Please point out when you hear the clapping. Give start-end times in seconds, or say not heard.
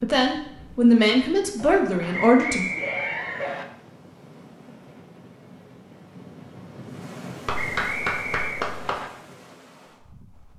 1.6-3.6, 7.5-8.9.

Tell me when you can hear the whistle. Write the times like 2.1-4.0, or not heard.
2.1-3.6, 7.5-9.1.